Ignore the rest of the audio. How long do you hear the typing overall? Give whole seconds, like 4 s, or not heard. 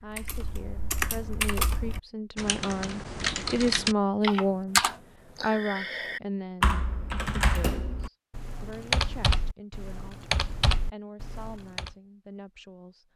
12 s.